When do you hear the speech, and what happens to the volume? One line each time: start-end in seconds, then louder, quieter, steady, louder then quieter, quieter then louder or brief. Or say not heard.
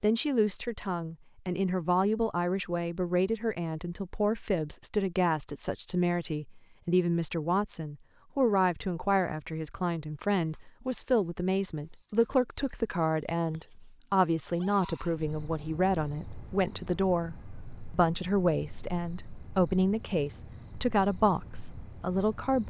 0.0-22.6 steady.